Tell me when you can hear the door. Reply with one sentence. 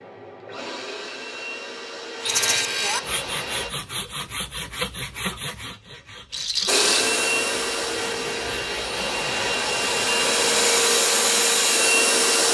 You can't hear the door here.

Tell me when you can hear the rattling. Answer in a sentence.
You can hear the rattling from 2.2 to 2.7 s and from 6.3 to 7.1 s.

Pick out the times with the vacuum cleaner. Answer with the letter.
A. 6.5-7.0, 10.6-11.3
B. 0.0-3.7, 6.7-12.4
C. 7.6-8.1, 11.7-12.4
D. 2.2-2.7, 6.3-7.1
B.